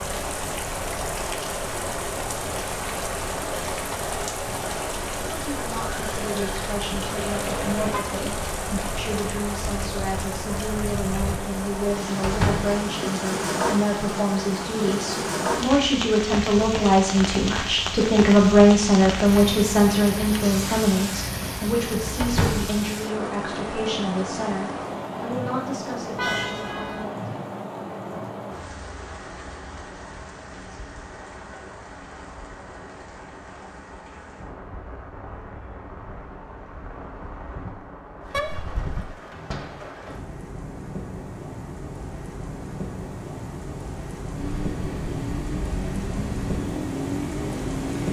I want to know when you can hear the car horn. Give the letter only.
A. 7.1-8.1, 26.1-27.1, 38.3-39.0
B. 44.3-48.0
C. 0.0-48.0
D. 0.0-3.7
A.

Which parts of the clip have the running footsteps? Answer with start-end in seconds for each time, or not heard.
not heard.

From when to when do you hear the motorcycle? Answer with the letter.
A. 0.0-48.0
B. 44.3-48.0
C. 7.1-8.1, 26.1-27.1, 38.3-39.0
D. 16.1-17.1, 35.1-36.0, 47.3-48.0
B.